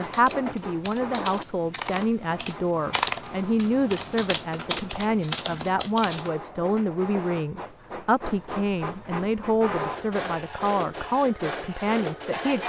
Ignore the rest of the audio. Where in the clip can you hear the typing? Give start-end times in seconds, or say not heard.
0.0-6.3.